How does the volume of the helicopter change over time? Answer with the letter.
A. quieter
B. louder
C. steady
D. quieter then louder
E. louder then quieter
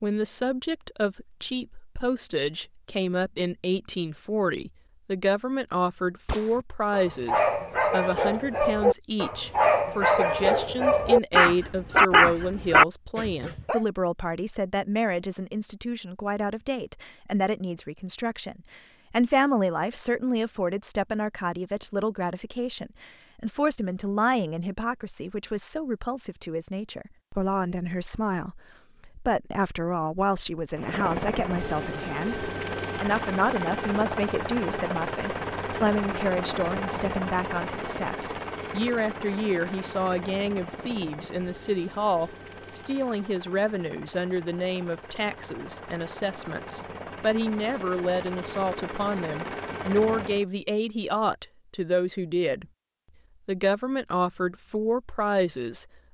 D.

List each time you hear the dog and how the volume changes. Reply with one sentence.
You can hear the dog from 6.5 to 13.8 s, getting louder.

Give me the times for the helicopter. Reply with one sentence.
The helicopter can be heard from 30.7 to 50.5 s.